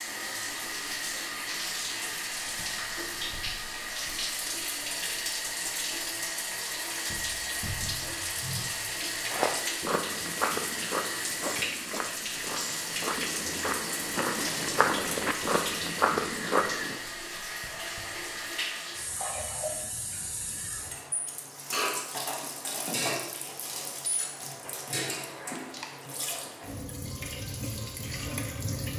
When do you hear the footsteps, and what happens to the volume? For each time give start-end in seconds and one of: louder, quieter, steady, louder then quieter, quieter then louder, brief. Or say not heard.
9.2-17.0 quieter then louder.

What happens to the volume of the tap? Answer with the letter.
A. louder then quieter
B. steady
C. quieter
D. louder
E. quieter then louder
B.